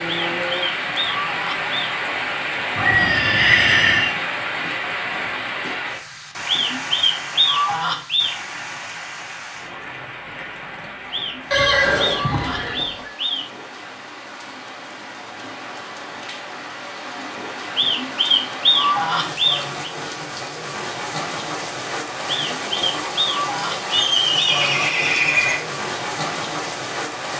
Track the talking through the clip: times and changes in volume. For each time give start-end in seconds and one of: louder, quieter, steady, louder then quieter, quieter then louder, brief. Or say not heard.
not heard.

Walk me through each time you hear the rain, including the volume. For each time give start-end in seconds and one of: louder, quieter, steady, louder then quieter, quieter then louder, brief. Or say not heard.
0.0-27.3 quieter then louder.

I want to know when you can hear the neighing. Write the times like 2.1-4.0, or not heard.
2.8-4.2, 11.5-13.1, 23.9-25.6.